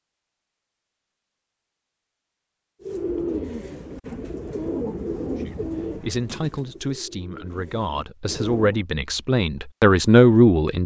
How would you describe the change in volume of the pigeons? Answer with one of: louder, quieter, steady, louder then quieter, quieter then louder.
quieter.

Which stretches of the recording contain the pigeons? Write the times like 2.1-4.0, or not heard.
2.8-8.8.